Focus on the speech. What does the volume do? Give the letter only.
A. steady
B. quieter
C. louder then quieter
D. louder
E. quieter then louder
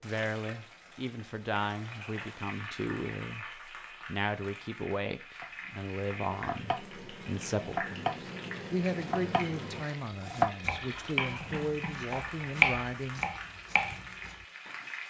A.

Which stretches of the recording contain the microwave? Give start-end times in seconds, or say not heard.
not heard.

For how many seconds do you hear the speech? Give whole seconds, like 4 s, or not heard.
13 s.